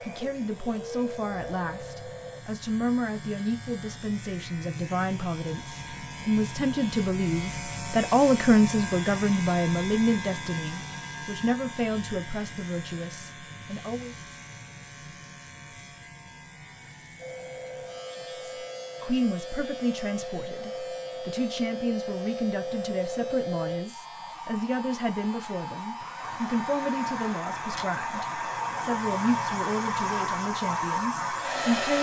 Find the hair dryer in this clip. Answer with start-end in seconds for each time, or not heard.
0.0-2.4, 17.1-31.9.